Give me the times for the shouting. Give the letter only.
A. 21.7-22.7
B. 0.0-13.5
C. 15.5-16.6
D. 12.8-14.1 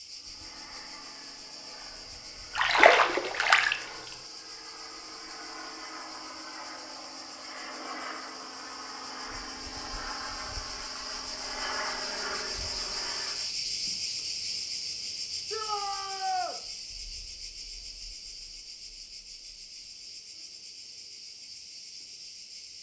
C.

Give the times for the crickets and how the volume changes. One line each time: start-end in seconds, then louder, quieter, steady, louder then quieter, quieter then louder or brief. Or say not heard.
0.0-22.7 louder then quieter.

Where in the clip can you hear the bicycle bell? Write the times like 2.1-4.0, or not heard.
not heard.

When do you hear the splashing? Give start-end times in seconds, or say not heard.
2.5-3.8.